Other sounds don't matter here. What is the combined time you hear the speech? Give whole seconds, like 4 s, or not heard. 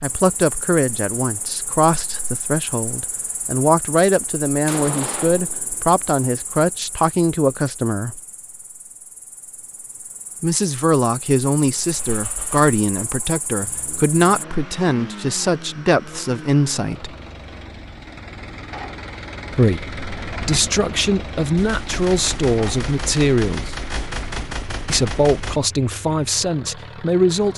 22 s.